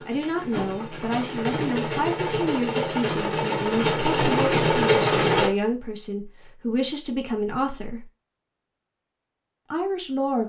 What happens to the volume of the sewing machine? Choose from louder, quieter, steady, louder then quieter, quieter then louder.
louder.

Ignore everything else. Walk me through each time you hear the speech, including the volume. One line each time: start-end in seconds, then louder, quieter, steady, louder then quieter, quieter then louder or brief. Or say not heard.
0.1-8.1 steady
9.7-10.4 brief.